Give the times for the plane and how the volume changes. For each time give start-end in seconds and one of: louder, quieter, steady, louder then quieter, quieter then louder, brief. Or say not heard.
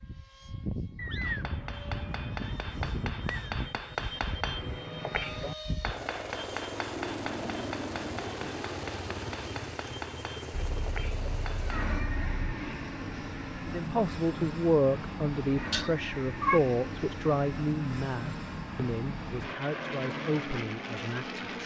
0.0-21.6 steady.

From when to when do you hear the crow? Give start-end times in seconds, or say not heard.
not heard.